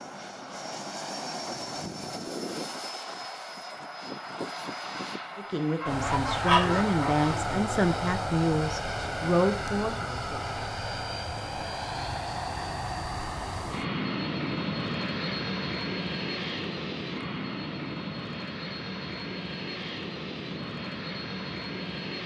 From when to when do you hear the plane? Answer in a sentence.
You can hear the plane from 0.0 to 22.2 s.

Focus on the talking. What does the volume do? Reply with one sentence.
The loudness of the talking goes up.